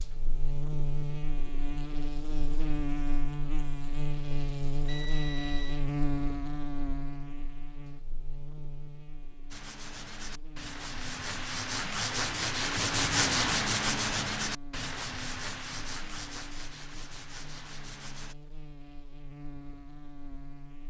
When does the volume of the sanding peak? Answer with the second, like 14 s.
13 s.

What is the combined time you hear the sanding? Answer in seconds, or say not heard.
9 s.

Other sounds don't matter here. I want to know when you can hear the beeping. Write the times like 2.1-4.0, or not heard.
4.8-5.8.